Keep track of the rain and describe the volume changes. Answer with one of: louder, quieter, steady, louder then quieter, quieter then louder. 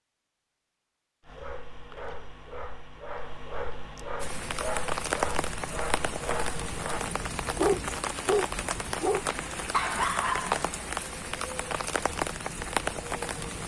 steady.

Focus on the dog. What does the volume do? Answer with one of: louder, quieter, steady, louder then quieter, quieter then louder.
louder.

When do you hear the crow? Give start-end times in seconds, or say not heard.
not heard.